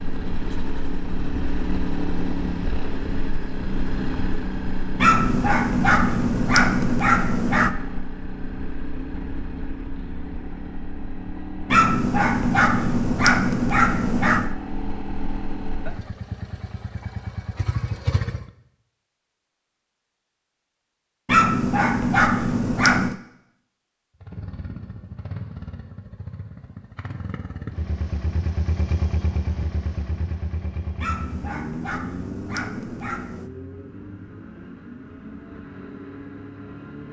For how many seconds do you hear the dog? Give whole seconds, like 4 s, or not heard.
10 s.